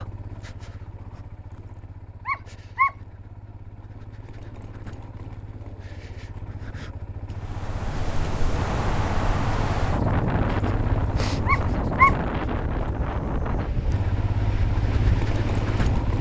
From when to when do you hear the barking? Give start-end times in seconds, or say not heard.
2.2-2.9, 11.4-12.2.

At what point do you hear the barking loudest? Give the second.
12 s.